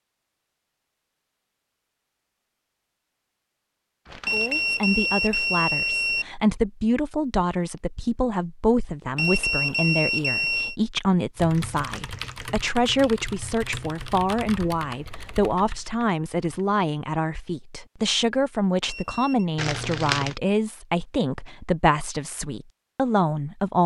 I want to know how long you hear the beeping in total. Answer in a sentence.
The beeping can be heard for 4 seconds in total.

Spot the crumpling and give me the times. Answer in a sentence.
You can hear the crumpling from 4.0 to 4.8 s, from 11.6 to 12.6 s and from 19.6 to 20.4 s.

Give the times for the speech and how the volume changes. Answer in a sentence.
The speech can be heard from 4.3 to 23.8 s, at a steady volume.